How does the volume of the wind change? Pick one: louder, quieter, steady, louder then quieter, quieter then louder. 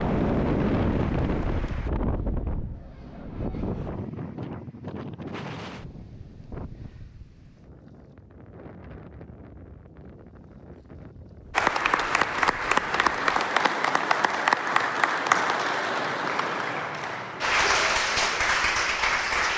quieter.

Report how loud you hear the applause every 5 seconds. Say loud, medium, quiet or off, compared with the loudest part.
quiet, off, loud, loud.